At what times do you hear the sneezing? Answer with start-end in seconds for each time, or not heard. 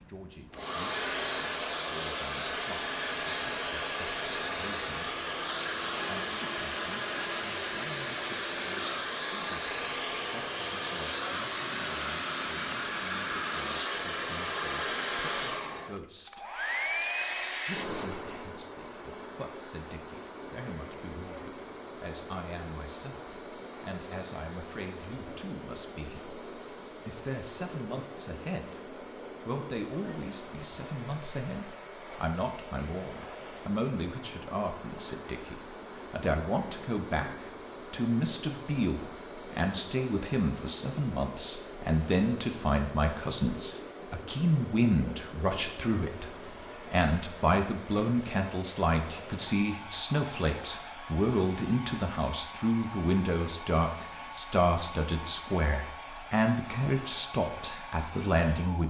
not heard.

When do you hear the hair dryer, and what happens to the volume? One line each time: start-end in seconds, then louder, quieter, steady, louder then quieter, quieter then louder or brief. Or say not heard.
0.0-58.8 quieter.